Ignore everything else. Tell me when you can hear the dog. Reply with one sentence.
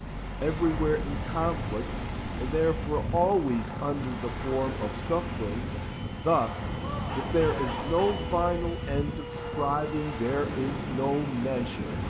You can hear the dog from 6.8 to 8.3 s.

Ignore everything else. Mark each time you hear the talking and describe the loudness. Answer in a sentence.
You can hear the talking from 0.4 to 12.0 s, at a steady volume.